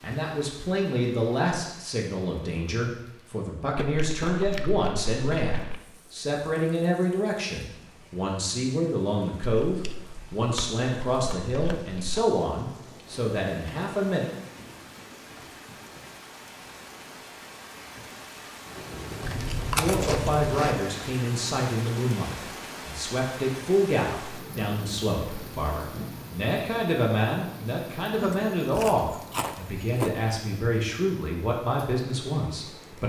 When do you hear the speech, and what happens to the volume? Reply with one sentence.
You can hear the speech from 0.0 to 14.3 s, at a steady volume; and from 19.8 to 33.0 s, at a steady volume.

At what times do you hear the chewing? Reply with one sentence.
The chewing can be heard from 3.8 to 5.8 s, from 9.4 to 12.2 s, from 19.2 to 20.8 s and from 28.2 to 30.2 s.